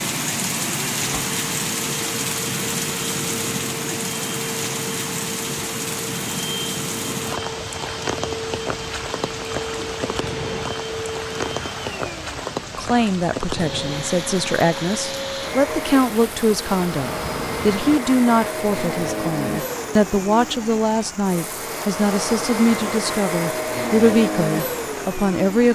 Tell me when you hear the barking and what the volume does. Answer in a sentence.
You can't hear the barking here.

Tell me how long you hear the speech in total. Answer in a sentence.
You can hear the speech for 13 seconds altogether.